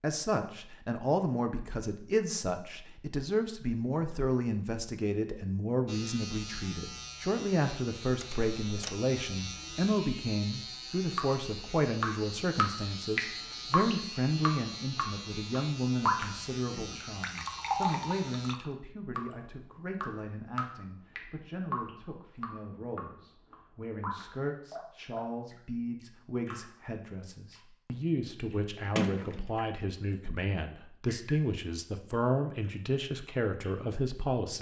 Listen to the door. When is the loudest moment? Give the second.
29 s.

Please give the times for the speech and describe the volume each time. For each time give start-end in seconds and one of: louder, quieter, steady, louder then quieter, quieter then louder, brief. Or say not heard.
0.0-34.5 quieter then louder.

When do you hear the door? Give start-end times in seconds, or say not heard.
8.2-8.9, 28.9-29.4.